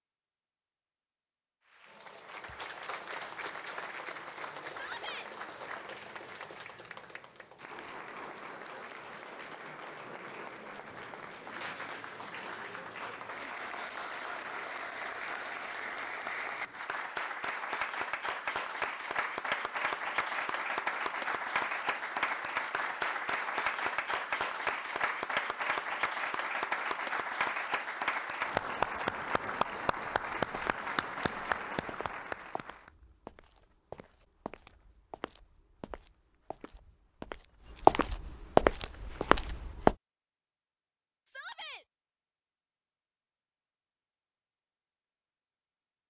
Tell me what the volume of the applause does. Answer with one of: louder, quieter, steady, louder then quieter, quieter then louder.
louder.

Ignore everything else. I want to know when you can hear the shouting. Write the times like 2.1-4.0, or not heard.
4.7-5.3, 41.2-41.9.